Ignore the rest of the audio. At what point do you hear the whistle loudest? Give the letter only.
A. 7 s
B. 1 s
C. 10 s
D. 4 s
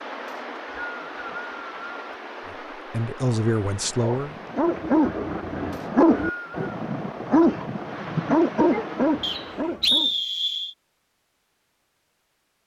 C.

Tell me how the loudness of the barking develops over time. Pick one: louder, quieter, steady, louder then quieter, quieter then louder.
steady.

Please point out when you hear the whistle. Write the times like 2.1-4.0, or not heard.
0.2-2.0, 5.7-6.7, 9.2-10.8.